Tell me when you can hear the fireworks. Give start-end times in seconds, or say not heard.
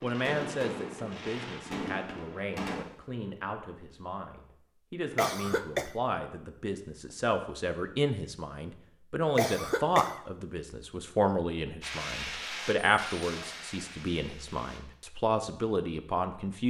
0.0-2.8, 11.8-14.8.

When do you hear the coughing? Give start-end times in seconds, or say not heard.
5.2-6.0, 9.3-10.2.